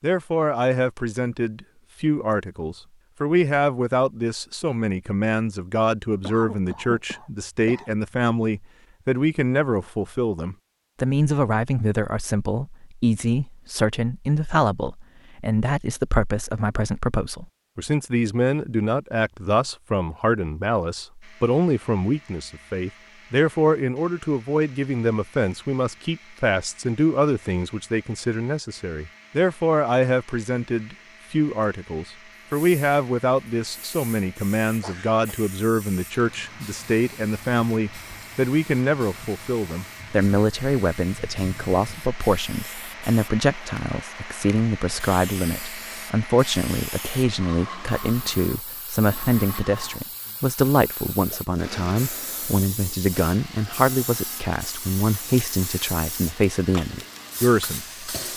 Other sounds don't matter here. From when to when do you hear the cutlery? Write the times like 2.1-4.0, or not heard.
not heard.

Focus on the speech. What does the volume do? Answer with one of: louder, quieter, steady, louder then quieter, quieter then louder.
steady.